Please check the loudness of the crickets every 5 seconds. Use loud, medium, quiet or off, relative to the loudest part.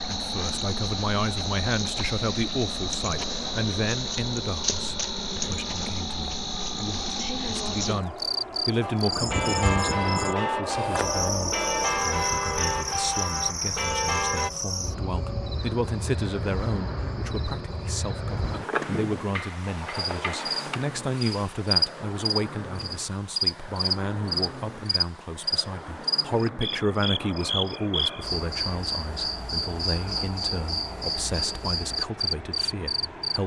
loud, loud, loud, medium, loud, loud, loud.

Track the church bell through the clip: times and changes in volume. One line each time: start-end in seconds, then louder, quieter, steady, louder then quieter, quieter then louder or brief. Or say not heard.
8.8-14.5 steady.